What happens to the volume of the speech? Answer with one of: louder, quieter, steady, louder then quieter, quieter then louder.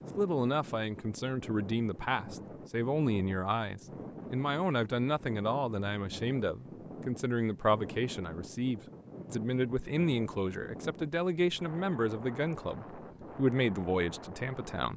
steady.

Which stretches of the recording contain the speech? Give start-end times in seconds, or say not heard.
0.1-14.9.